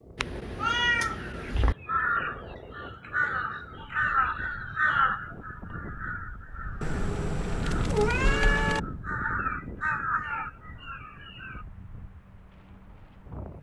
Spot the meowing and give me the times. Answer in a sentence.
You can hear the meowing from 0.1 to 1.8 s and from 6.8 to 8.8 s.